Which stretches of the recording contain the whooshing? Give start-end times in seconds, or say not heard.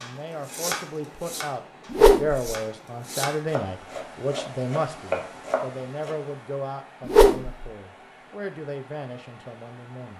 1.9-2.4, 7.0-7.7.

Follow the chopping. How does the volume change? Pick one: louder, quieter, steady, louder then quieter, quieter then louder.
quieter then louder.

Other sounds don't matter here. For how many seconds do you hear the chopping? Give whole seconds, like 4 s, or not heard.
6 s.